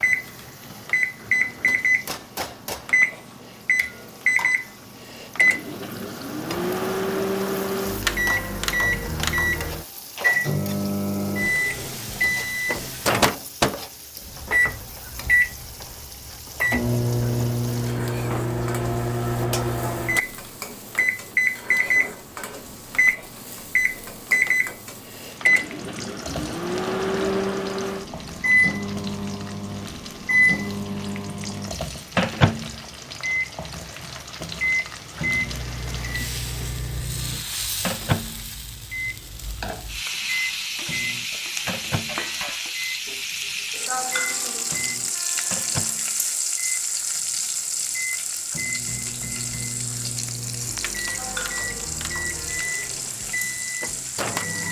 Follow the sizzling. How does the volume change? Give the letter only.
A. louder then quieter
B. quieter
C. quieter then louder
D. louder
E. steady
D.